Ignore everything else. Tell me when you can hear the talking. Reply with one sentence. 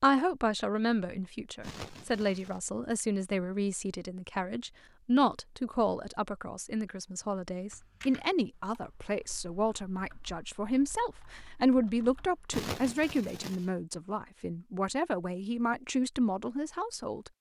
The talking can be heard from 0.0 to 17.3 s.